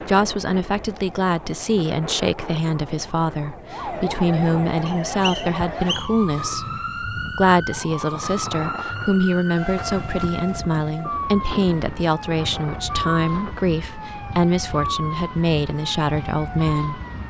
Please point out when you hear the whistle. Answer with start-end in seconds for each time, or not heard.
4.8-6.1.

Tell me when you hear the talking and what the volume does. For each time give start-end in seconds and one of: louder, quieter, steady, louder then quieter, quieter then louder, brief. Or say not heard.
0.1-17.0 steady.